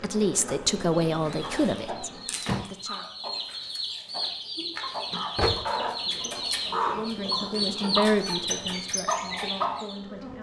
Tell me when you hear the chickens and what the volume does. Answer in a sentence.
You can hear the chickens from 0.8 to 10.0 s, getting louder.